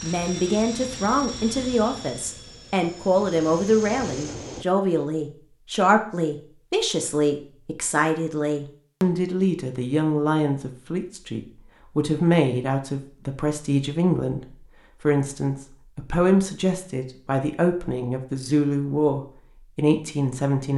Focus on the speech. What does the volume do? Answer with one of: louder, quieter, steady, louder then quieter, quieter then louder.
steady.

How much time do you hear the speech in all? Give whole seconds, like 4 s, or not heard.
21 s.